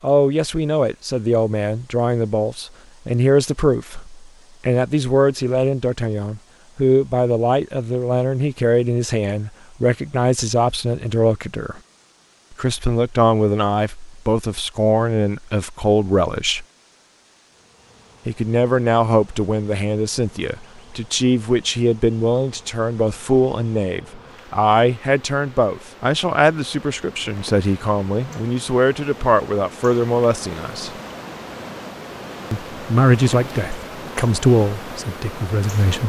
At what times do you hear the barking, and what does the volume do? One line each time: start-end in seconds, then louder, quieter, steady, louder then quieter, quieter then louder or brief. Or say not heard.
not heard.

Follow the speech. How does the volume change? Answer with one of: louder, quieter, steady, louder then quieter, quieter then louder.
steady.